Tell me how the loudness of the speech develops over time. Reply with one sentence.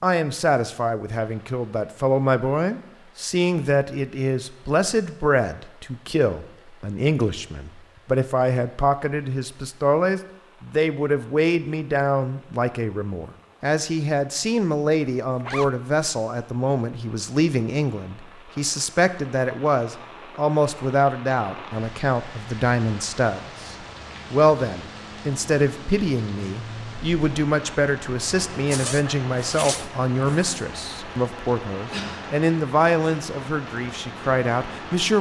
The loudness of the speech stays about the same.